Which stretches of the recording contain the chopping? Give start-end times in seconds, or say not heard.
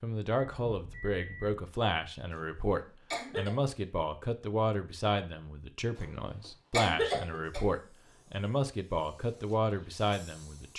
not heard.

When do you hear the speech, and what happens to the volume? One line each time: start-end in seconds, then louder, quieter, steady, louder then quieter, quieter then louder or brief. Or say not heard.
0.0-10.7 steady.